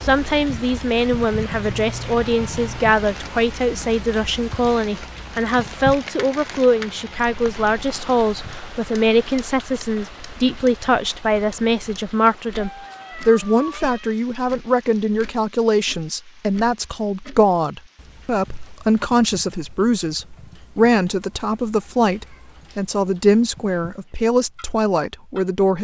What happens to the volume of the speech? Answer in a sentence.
The volume of the speech stays about the same.